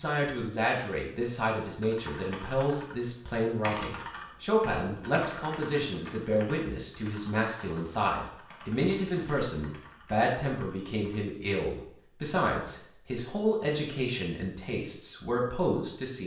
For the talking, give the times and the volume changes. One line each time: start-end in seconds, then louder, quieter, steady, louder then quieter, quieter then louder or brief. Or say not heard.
0.0-16.2 steady.